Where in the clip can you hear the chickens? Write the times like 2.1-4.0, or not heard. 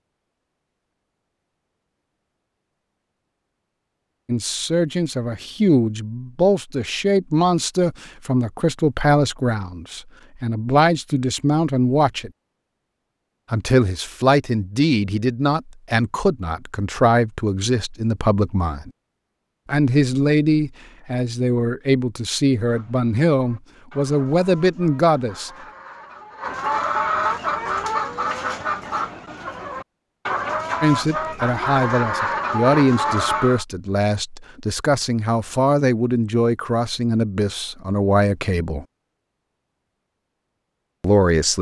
22.6-33.6.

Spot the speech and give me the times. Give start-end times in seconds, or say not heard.
4.2-12.3, 13.5-18.9, 19.6-25.5, 30.8-38.9, 41.0-41.5.